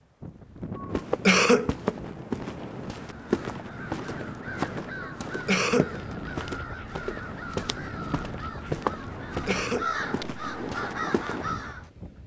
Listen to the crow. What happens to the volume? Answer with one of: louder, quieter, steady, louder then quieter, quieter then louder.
louder.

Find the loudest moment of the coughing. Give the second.
1 s.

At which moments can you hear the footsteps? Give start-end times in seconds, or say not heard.
0.9-11.8.